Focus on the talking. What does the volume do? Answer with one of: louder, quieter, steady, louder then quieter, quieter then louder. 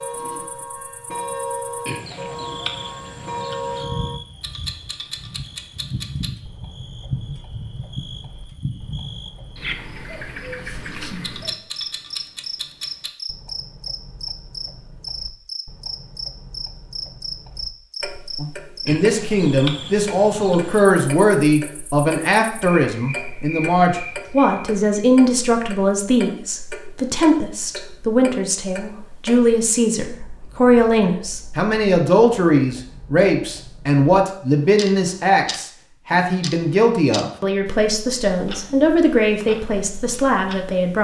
steady.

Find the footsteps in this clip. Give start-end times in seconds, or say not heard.
not heard.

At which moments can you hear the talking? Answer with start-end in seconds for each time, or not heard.
18.4-40.9.